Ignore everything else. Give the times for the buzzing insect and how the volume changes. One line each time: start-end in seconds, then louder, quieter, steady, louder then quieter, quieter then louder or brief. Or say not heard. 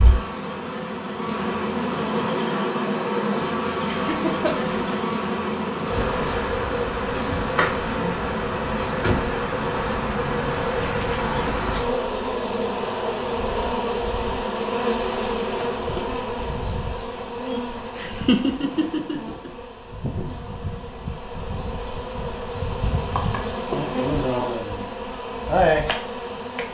0.0-26.6 quieter then louder.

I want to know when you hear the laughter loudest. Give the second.
18 s.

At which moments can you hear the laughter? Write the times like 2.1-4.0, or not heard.
3.9-4.7, 17.9-19.5.